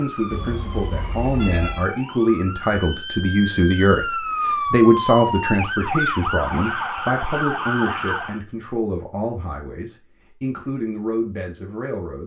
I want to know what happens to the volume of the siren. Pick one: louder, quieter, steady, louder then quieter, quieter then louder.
louder.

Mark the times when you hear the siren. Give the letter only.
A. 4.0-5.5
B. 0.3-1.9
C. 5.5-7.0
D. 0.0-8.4
D.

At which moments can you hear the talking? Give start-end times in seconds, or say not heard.
0.0-12.2.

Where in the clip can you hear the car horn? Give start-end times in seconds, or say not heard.
0.3-1.9.